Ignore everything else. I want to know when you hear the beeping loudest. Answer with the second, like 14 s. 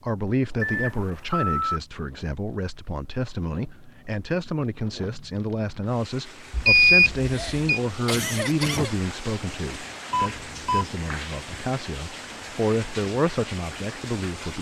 7 s.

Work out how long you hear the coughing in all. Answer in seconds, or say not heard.
2 s.